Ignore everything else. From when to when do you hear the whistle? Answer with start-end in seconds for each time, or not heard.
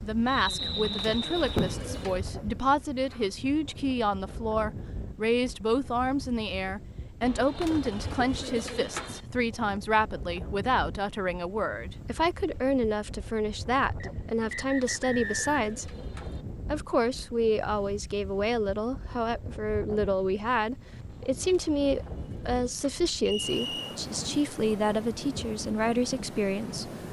0.2-1.8, 14.0-15.6, 23.2-24.0.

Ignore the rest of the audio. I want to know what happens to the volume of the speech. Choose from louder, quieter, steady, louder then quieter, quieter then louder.
steady.